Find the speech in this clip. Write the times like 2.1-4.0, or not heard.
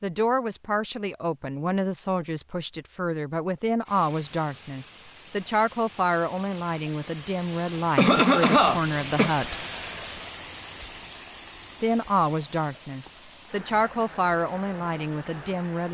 0.0-9.6, 11.8-15.9.